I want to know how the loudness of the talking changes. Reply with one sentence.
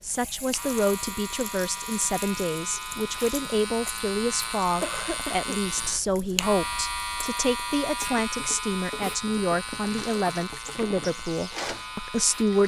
The loudness of the talking stays about the same.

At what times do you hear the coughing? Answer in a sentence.
You can hear the coughing from 4.7 to 5.6 s.